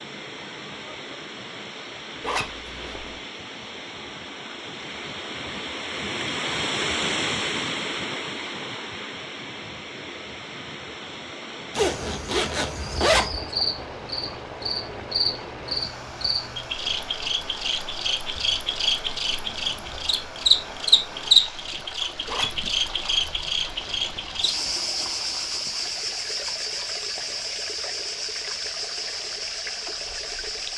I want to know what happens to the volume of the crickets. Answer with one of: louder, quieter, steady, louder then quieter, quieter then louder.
louder then quieter.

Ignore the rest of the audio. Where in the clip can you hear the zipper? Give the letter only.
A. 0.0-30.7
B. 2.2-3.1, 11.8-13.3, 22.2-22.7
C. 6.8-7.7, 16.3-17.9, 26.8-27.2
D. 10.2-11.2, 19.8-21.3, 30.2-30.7
B.